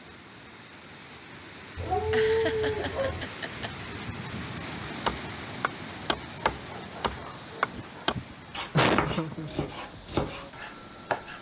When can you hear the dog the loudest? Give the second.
2 s.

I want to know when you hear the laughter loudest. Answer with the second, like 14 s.
9 s.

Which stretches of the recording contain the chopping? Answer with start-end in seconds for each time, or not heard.
5.0-11.3.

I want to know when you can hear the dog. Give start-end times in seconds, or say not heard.
1.8-3.3, 6.4-8.1.